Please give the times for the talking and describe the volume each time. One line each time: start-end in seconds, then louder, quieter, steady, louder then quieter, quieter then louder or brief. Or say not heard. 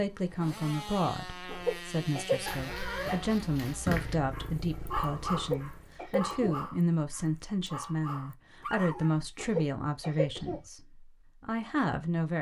0.0-12.3 steady.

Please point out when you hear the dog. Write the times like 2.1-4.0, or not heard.
2.5-9.2.